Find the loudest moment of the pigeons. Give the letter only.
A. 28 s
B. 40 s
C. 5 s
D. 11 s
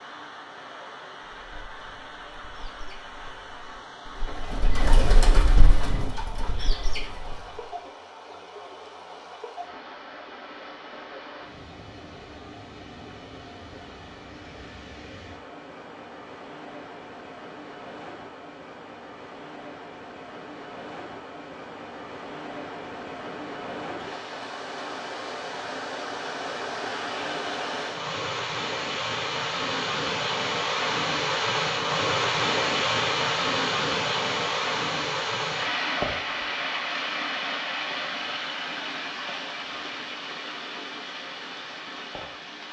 C.